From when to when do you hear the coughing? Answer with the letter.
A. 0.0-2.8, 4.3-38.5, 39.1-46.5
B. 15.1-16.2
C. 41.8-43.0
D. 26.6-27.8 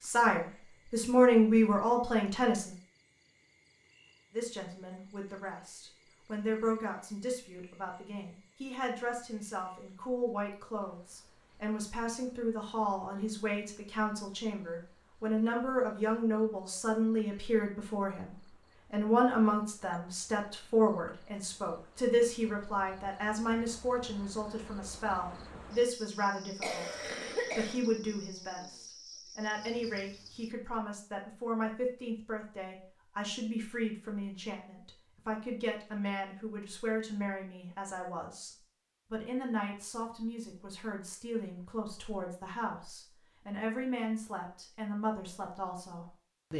D.